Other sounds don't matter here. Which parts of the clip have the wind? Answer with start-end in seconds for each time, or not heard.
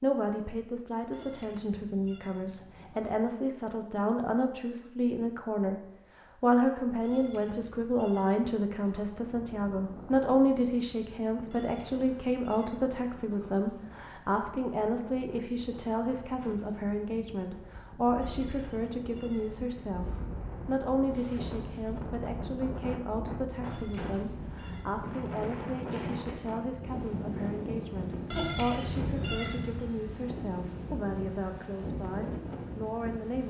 8.9-33.4.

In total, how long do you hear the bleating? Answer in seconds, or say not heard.
11 s.